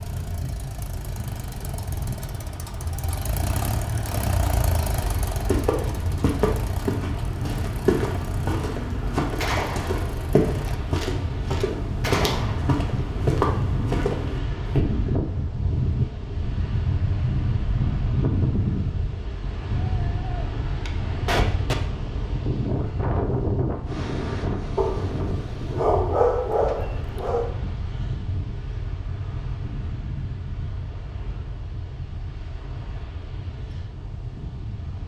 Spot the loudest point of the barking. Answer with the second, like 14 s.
26 s.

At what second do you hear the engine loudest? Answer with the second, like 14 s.
4 s.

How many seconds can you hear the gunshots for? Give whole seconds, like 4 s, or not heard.
5 s.